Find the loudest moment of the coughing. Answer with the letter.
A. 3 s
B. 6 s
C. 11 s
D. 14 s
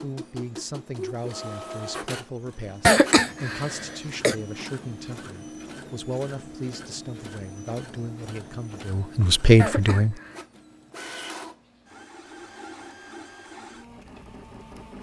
A.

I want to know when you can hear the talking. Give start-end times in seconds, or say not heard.
0.0-10.2.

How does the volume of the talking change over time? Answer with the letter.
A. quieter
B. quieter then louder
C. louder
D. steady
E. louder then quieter
C.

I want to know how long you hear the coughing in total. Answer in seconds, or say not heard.
2 s.